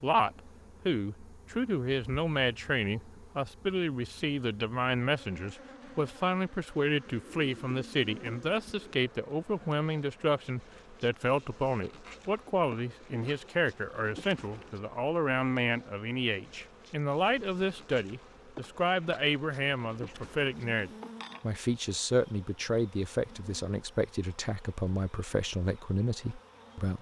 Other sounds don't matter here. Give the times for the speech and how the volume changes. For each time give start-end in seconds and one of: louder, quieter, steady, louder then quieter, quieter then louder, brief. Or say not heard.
0.0-26.9 steady.